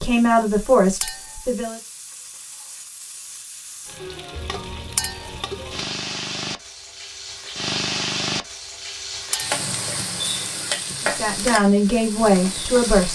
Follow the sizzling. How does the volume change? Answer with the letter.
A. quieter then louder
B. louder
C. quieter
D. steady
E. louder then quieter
B.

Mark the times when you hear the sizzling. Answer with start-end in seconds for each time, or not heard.
0.0-13.1.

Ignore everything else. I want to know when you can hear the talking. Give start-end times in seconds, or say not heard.
0.0-1.8, 11.0-13.1.